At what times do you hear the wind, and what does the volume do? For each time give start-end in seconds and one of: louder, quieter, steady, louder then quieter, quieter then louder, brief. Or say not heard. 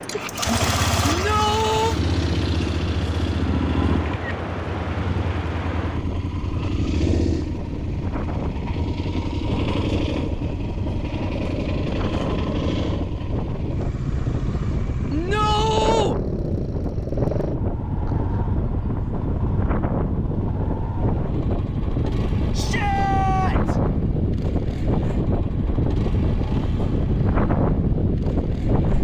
0.0-28.9 louder.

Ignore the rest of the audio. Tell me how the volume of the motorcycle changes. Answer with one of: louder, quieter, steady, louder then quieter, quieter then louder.
quieter.